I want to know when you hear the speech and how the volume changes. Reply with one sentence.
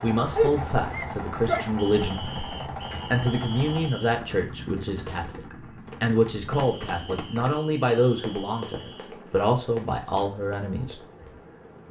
The speech can be heard briefly from 0.0 to 2.4 s; and from 3.1 to 10.9 s, at a steady volume.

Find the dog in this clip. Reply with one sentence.
You can hear the dog from 0.3 to 1.6 s.